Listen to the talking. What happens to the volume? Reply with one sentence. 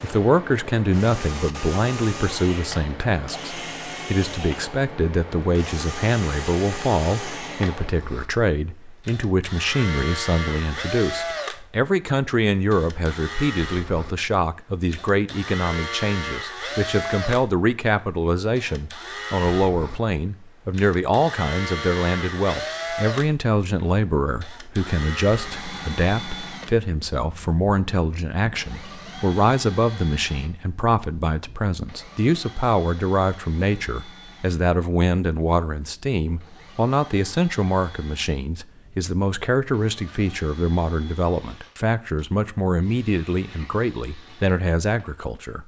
The volume of the talking stays about the same.